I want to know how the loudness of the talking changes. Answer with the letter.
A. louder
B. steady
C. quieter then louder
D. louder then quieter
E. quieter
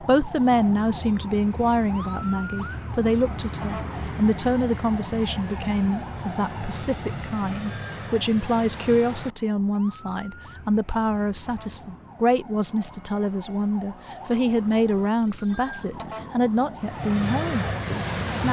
B.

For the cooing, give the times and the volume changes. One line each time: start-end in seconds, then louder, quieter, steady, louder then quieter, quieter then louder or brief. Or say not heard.
not heard.